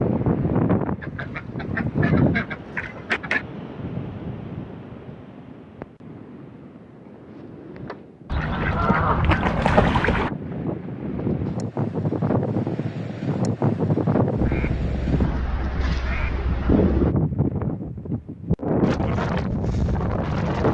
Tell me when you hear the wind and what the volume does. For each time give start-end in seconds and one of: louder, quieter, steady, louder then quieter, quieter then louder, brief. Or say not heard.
0.0-20.6 quieter then louder.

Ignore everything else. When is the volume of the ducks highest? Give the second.
10 s.